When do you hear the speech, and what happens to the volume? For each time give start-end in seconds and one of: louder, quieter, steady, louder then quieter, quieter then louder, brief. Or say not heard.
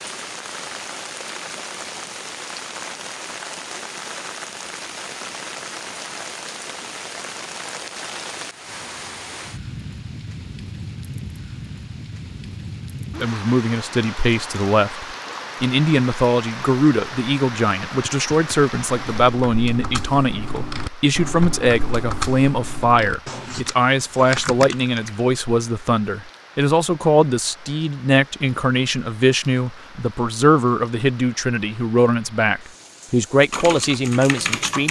13.2-34.8 steady.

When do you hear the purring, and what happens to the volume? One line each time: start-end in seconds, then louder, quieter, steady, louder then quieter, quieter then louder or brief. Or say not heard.
not heard.